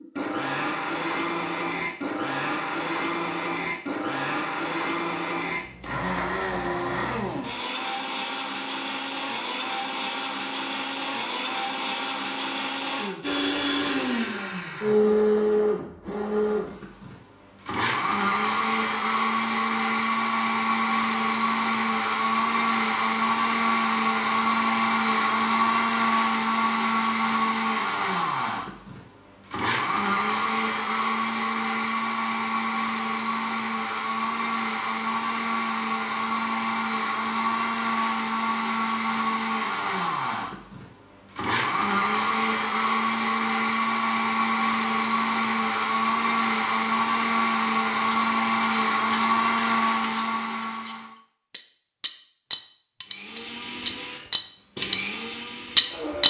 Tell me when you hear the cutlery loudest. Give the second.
56 s.